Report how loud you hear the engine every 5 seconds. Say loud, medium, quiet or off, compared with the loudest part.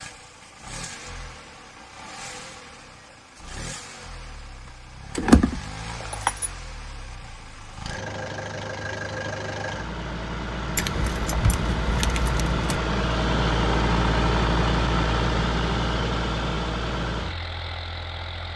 quiet, medium, loud, loud.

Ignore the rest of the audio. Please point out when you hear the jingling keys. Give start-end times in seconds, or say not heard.
5.2-6.5, 10.8-12.8.